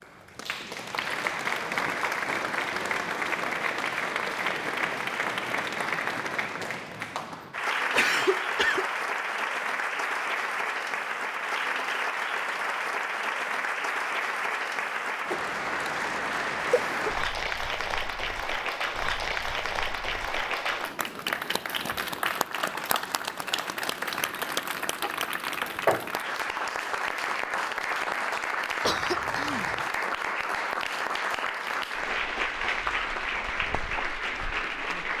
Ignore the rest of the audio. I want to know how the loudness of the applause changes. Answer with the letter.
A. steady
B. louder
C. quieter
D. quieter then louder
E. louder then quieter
A.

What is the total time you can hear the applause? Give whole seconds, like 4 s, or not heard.
35 s.